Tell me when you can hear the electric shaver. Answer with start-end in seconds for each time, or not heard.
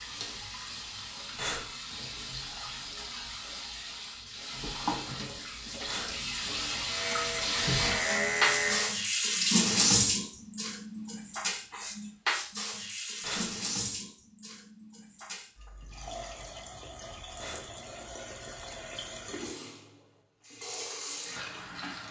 6.8-8.9.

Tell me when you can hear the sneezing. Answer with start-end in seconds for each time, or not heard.
not heard.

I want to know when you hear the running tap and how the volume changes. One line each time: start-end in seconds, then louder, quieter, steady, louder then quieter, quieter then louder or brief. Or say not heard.
0.0-22.0 louder then quieter.